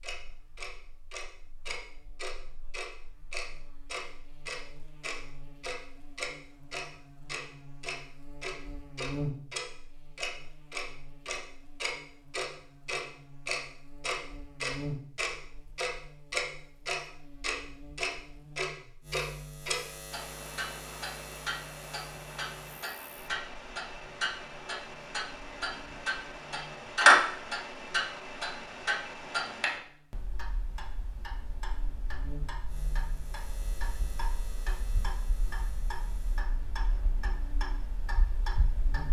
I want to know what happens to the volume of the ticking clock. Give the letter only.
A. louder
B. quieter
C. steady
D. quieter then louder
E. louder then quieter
E.